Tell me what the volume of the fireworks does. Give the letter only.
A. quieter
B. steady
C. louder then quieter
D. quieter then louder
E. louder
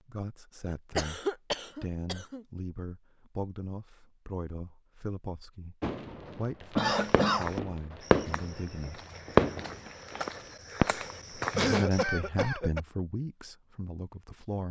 C.